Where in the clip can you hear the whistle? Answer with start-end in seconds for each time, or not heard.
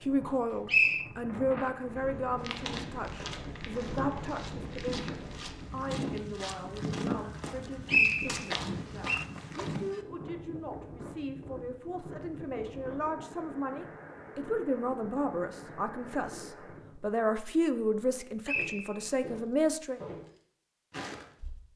0.7-1.1, 7.8-9.2, 18.4-19.1.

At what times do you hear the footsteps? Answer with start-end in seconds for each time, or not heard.
2.4-10.0, 18.5-21.6.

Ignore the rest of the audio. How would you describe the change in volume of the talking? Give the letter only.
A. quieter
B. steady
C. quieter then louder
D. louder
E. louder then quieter
C.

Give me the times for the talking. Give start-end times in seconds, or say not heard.
0.0-20.0.